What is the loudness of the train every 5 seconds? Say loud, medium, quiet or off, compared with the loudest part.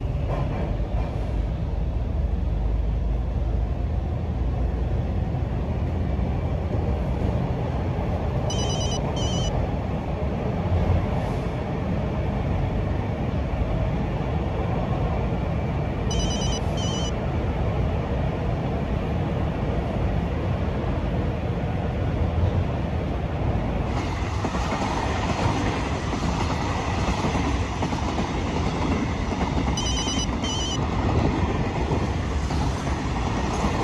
medium, loud, loud, loud, loud, loud, loud.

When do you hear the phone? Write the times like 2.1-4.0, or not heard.
8.4-9.5, 16.1-17.1, 29.8-30.8.